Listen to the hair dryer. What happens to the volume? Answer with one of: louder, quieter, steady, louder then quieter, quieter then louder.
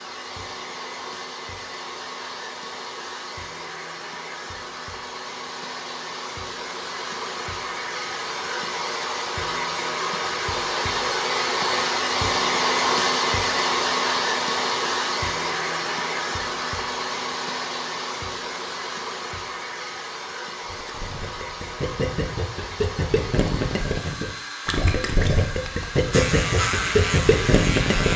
louder then quieter.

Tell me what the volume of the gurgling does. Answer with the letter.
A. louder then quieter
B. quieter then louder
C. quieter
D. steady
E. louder
E.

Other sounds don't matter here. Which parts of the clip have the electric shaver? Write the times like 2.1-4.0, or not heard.
26.1-28.1.